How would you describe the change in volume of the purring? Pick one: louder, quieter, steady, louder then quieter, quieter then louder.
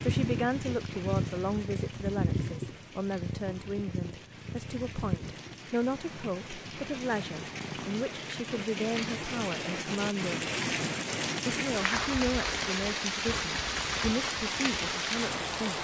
quieter.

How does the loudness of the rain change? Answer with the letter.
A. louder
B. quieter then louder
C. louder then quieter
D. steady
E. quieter
A.